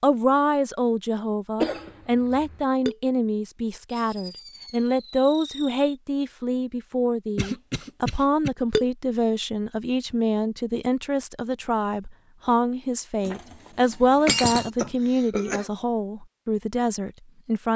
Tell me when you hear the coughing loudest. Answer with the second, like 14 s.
2 s.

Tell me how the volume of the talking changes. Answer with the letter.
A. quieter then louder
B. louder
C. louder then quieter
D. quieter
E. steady
E.